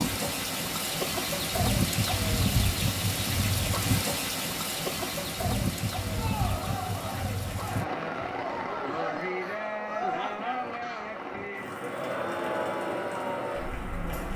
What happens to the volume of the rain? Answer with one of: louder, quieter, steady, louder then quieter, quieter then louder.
quieter.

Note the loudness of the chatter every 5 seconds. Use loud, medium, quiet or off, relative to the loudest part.
off, loud, loud.